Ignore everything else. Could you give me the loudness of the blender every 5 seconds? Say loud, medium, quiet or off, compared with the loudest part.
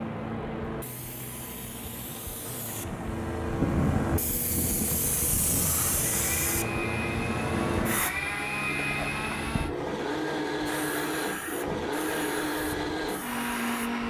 off, loud, loud.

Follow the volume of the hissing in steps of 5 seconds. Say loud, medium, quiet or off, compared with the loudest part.
loud, loud, medium.